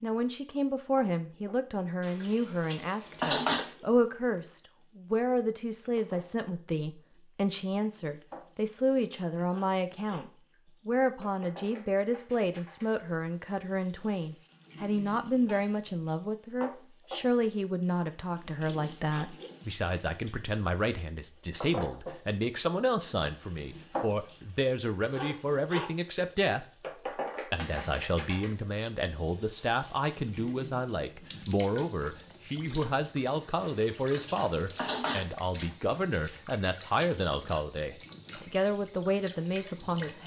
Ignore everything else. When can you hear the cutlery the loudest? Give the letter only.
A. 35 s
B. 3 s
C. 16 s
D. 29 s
B.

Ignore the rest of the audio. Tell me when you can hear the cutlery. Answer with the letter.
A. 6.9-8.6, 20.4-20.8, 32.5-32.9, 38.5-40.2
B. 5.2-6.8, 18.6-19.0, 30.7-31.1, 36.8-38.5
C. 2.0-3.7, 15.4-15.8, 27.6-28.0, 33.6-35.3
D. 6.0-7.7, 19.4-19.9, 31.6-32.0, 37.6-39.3
C.